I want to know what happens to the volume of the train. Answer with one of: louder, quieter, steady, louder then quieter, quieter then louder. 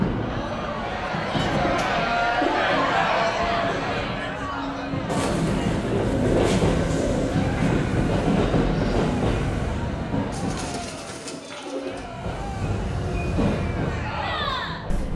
louder then quieter.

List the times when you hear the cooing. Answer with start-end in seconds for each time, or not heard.
1.5-2.9, 5.0-7.8, 10.3-12.1.